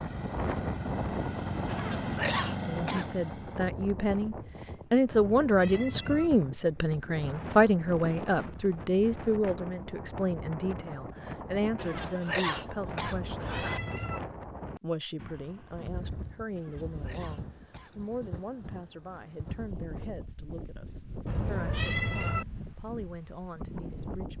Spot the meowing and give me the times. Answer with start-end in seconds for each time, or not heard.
5.1-6.3, 13.0-14.2, 21.2-22.4.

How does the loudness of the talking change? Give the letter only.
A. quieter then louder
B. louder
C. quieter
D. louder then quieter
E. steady
C.